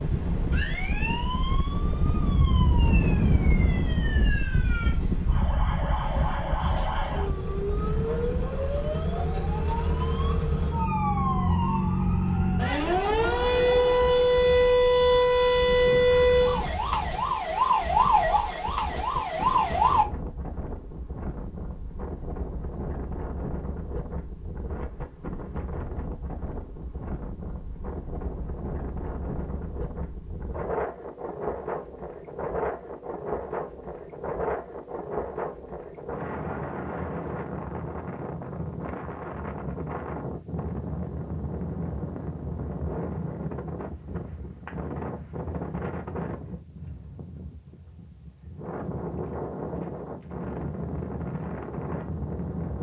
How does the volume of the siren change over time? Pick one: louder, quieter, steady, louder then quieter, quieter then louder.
louder.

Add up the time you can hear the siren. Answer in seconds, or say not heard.
20 s.